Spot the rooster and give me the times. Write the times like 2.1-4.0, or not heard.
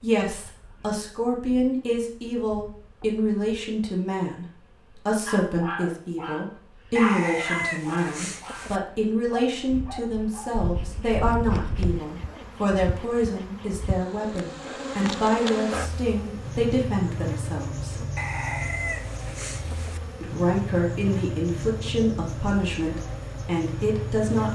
7.0-8.8, 18.1-20.0.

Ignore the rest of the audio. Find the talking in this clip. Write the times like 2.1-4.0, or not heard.
0.0-18.0, 20.2-24.4.